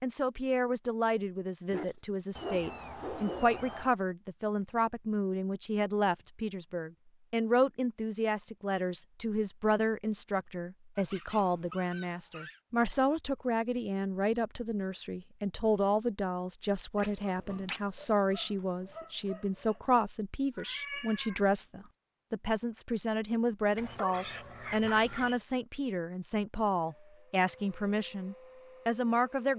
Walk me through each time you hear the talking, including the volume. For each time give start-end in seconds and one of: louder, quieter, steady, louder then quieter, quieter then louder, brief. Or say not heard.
0.0-29.5 steady.